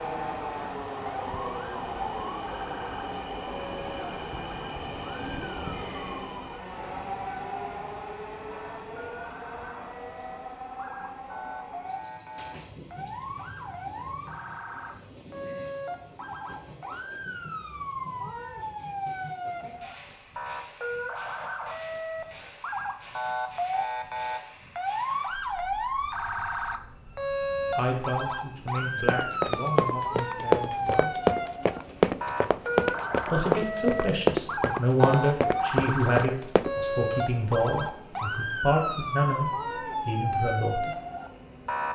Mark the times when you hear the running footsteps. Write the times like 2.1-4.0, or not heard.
29.1-36.8.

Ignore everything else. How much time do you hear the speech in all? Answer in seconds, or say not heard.
11 s.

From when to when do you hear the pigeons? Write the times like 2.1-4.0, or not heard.
not heard.